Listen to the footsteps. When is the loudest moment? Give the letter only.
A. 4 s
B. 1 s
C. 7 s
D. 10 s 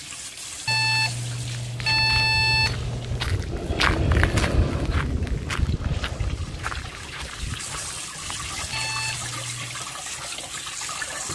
A.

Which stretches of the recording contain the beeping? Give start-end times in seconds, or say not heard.
0.7-3.4, 8.7-9.8.